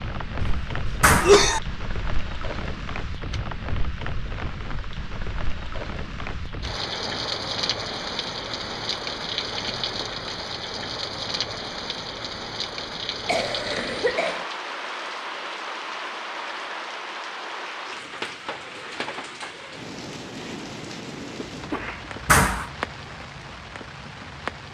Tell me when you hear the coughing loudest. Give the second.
1 s.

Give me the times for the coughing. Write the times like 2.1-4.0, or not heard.
0.4-1.6, 13.2-14.4, 21.4-22.1.